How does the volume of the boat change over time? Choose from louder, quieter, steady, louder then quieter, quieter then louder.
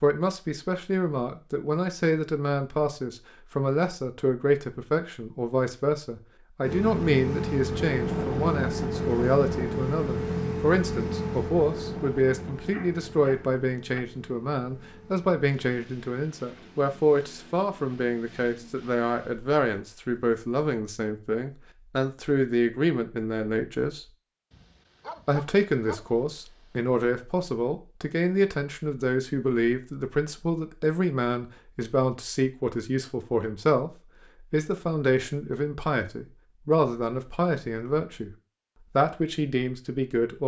quieter.